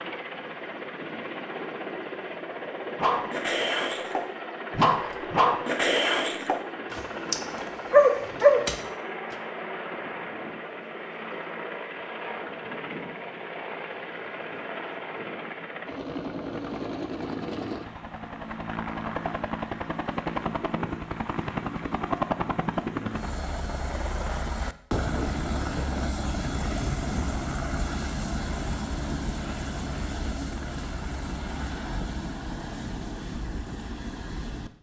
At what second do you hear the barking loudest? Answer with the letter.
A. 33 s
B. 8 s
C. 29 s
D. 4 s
B.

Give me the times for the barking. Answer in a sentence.
You can hear the barking from 3.0 to 9.3 s.